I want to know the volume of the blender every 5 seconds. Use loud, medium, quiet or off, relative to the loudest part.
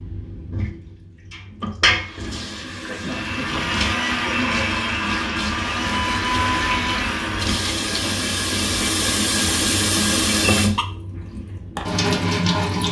loud, loud, off.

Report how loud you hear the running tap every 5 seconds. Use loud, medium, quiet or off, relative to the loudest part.
medium, loud, loud.